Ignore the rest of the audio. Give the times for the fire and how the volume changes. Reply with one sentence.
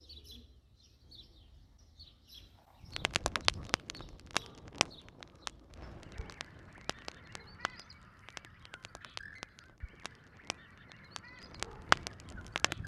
The fire can be heard from 2.9 to 12.8 s, getting quieter then louder.